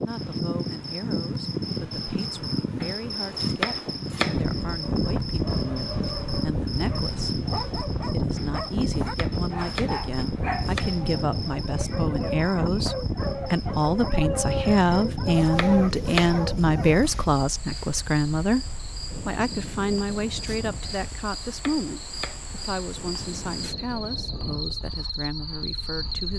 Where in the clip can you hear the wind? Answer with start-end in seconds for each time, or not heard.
4.3-26.3.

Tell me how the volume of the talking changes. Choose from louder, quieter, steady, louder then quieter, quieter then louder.
louder then quieter.